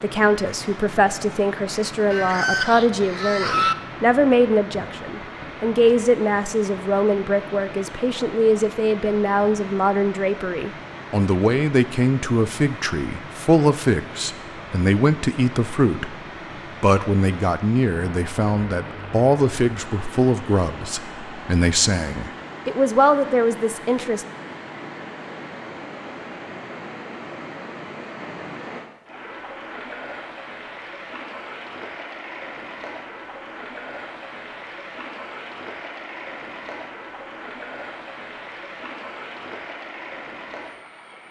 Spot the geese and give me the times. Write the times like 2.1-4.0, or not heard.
2.1-3.8.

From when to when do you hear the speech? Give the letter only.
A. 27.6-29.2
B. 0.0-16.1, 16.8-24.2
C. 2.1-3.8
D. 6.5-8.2
B.